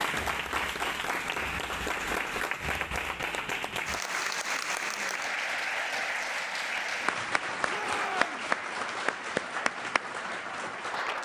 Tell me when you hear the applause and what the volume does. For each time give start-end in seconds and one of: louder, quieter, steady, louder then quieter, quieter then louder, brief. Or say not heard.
0.0-11.1 steady.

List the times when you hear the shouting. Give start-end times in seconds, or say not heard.
7.7-8.5.